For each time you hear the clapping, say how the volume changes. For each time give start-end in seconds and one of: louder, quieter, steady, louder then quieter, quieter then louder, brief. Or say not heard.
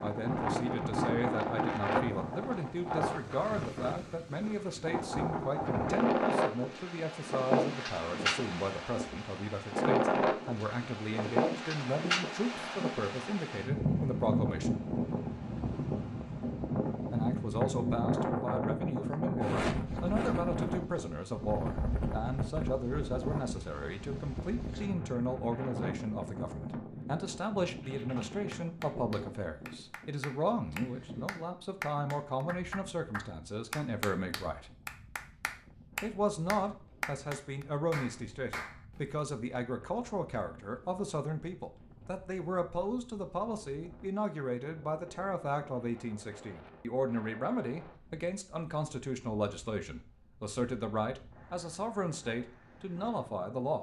27.8-39.2 louder.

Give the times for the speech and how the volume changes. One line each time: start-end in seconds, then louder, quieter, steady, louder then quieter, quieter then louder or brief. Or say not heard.
0.0-14.8 steady
17.1-34.7 steady
36.0-53.7 steady.